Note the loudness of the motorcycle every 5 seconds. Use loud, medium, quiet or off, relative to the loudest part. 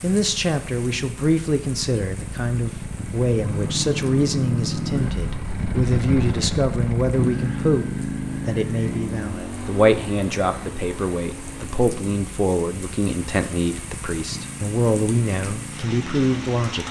loud, loud, medium, medium.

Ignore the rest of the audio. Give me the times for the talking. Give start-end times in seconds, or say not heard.
0.0-16.8.